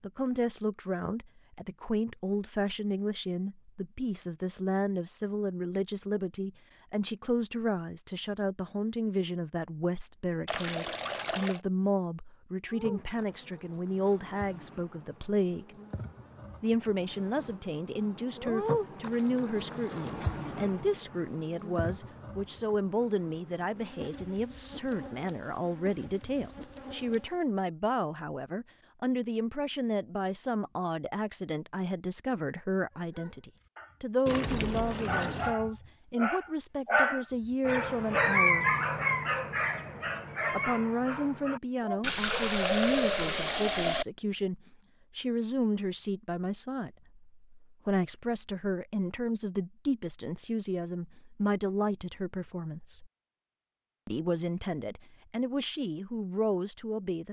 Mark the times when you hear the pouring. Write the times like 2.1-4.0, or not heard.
10.4-11.6, 34.2-35.5, 42.0-44.0.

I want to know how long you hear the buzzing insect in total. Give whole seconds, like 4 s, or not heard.
15 s.